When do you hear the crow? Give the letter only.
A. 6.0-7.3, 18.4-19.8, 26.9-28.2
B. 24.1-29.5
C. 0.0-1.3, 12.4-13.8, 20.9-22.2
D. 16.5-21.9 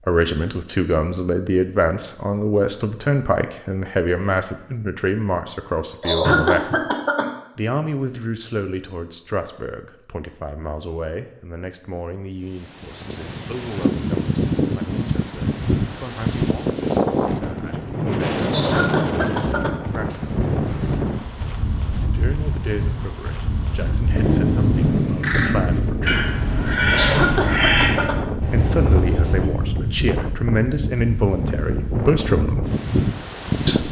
B.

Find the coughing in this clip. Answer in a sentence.
The coughing can be heard from 6.0 to 7.3 s, from 18.4 to 19.8 s and from 26.9 to 28.2 s.